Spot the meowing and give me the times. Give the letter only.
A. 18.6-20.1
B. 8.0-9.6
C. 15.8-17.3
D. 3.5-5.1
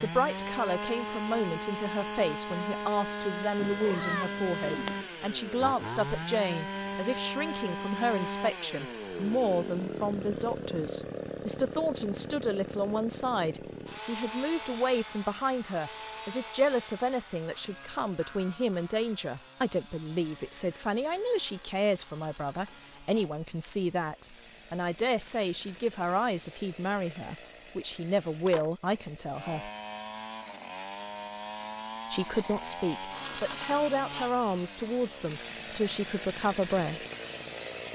D.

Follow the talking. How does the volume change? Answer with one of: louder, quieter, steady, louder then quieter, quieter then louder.
steady.